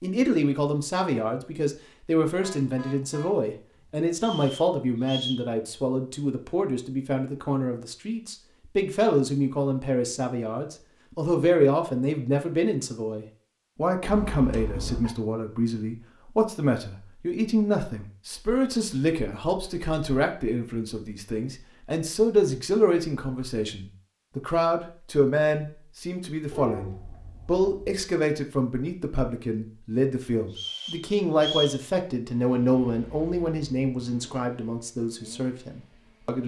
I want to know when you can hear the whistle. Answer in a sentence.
You can hear the whistle from 4.2 to 5.5 s and from 30.5 to 31.8 s.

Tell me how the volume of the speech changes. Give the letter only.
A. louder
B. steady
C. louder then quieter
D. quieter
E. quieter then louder
B.